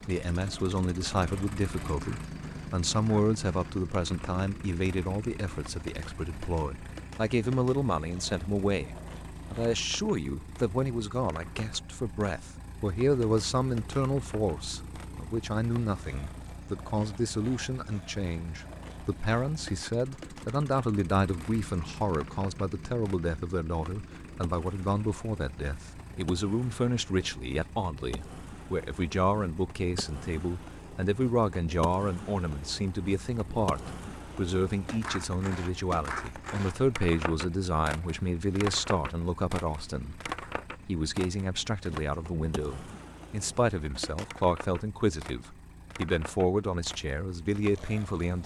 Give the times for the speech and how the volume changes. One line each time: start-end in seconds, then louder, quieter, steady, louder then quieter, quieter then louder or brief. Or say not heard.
0.1-48.4 steady.